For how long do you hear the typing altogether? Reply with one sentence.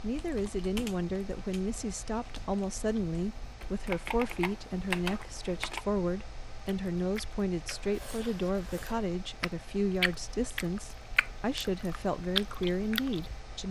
You can hear the typing for 6 seconds altogether.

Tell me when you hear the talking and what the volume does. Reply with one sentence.
The talking can be heard from 0.0 to 13.6 s, at a steady volume.